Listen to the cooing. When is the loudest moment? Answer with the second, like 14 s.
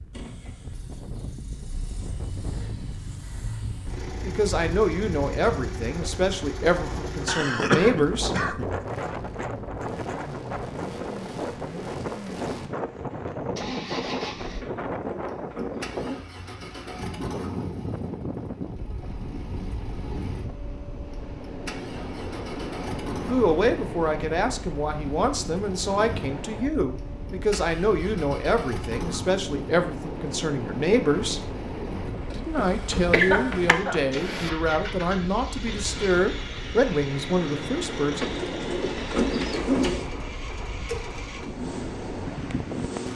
40 s.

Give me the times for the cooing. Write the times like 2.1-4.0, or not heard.
14.6-16.2, 38.2-40.1.